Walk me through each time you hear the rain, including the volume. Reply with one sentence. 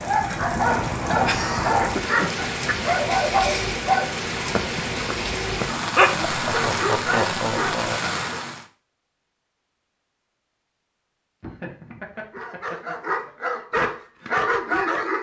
The rain can be heard from 0.0 to 8.7 s, at a steady volume.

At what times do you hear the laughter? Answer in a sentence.
The laughter can be heard from 1.1 to 2.5 s, from 6.2 to 8.0 s and from 11.4 to 13.3 s.